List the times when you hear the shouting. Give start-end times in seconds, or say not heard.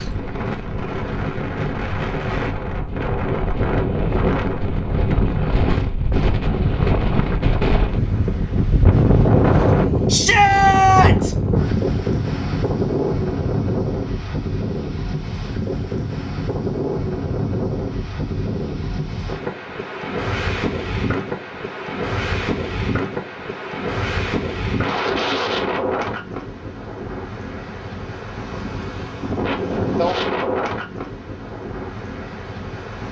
10.1-11.3.